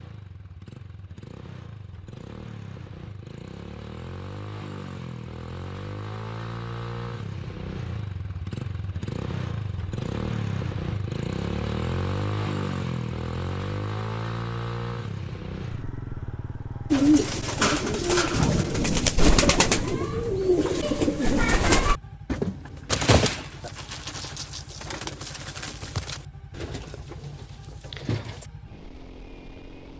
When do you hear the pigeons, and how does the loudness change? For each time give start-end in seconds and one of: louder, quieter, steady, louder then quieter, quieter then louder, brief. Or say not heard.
16.9-28.5 quieter.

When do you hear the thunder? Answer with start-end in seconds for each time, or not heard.
18.3-21.7.